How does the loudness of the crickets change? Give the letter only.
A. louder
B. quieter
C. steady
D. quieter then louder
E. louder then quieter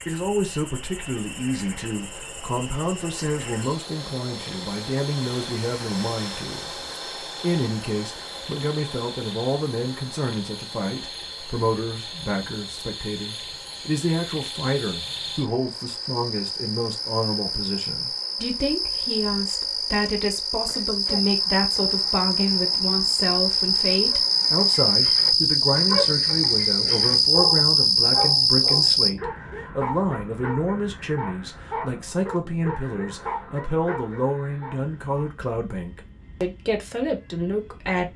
A.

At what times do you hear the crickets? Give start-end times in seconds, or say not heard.
0.0-29.1.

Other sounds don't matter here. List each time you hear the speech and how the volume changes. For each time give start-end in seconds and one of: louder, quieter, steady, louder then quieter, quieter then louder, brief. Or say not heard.
0.1-38.1 steady.